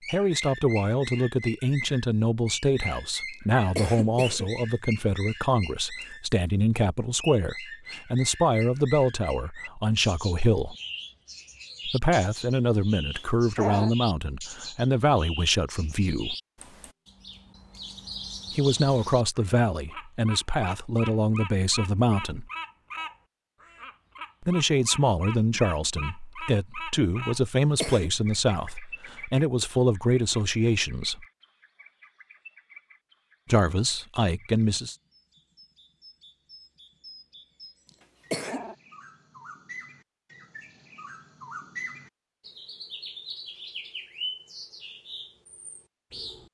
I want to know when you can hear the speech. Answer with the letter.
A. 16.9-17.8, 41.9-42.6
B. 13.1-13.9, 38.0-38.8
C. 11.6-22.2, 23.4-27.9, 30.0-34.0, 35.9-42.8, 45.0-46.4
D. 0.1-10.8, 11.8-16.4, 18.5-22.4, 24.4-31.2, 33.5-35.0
D.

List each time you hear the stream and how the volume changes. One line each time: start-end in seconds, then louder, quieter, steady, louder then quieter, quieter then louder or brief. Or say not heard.
not heard.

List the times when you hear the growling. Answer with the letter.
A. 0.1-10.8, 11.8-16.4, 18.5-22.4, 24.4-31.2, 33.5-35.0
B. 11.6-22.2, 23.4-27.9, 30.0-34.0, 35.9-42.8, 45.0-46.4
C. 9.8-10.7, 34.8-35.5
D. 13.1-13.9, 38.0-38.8
D.